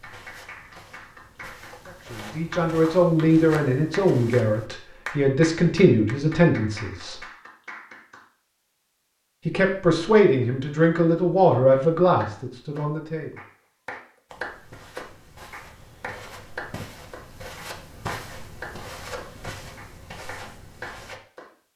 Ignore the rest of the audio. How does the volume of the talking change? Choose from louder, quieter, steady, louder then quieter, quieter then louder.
steady.